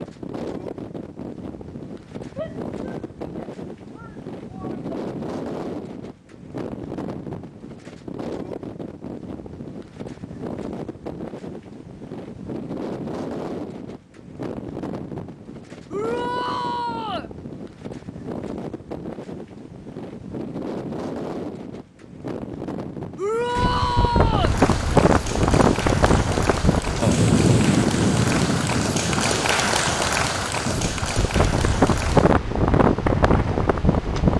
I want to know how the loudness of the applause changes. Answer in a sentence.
The volume of the applause goes up, then down.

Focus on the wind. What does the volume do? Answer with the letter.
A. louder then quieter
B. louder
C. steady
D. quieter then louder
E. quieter
B.